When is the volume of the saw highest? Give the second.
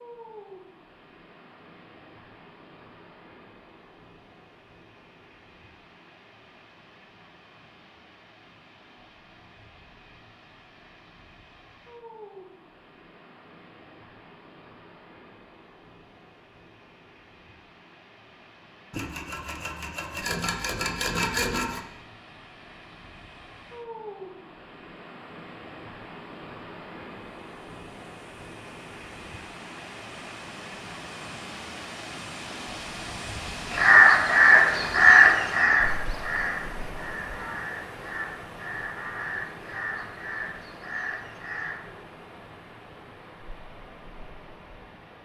21 s.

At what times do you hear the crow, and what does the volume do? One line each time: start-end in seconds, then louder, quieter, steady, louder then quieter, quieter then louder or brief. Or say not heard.
33.7-41.8 quieter.